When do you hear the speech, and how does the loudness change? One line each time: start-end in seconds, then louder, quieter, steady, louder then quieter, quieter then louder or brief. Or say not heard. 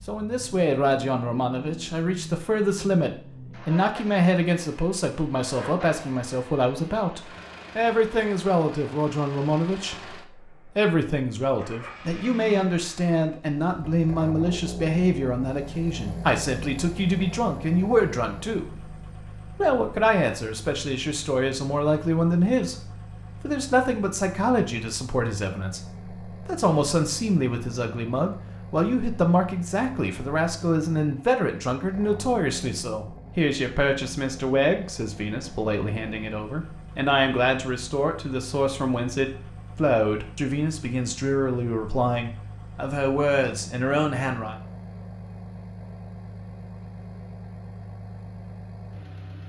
0.0-44.5 steady.